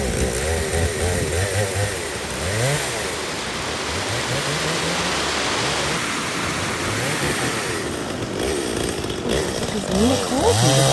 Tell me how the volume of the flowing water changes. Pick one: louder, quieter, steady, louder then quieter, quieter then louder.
louder then quieter.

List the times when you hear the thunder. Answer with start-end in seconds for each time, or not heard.
6.2-8.1.